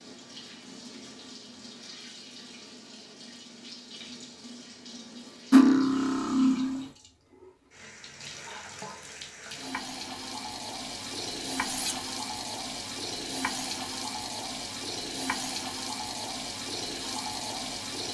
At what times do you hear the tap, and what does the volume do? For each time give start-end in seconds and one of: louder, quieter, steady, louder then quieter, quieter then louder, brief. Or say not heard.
0.0-18.0 louder.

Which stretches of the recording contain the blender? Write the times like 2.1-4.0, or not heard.
not heard.